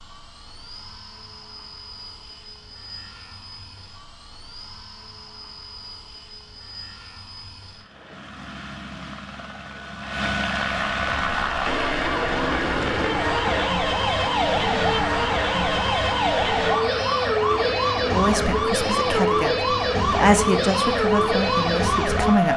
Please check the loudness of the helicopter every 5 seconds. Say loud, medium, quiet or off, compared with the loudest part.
quiet, quiet, loud, medium, medium.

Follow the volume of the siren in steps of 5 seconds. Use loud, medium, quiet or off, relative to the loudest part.
off, off, loud, loud, loud.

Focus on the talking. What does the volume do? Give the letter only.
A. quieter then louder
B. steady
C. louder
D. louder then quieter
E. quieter
D.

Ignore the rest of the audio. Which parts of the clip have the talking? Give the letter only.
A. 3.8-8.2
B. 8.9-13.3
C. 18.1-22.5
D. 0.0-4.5
C.